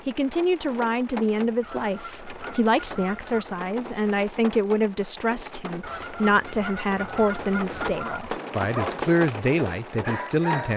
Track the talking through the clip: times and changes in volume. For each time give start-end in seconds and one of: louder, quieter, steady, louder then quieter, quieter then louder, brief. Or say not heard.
0.1-10.7 steady.